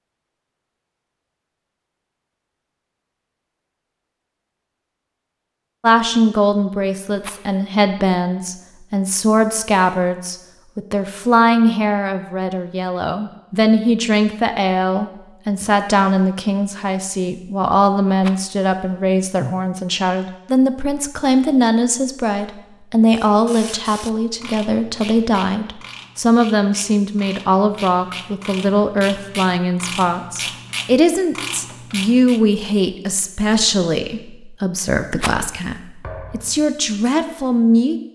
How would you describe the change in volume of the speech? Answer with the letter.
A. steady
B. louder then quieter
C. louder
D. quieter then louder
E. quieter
A.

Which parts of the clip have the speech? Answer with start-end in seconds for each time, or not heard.
5.8-38.1.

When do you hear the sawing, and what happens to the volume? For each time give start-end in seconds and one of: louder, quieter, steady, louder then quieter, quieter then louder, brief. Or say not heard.
not heard.